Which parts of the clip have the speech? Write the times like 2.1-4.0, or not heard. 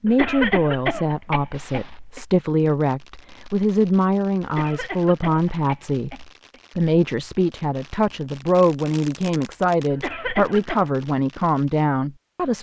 0.0-12.5.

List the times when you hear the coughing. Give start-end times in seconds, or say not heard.
0.1-2.2, 4.4-6.6, 9.9-10.8.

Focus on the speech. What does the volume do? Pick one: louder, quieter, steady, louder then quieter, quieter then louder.
steady.